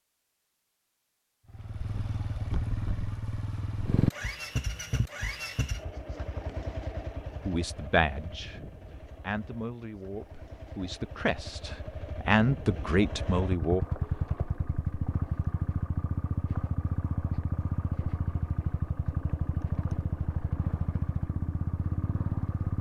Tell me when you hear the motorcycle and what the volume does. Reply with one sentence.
The motorcycle can be heard from 1.4 to 22.7 s, getting quieter then louder.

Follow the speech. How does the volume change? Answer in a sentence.
The volume of the speech goes down, then up.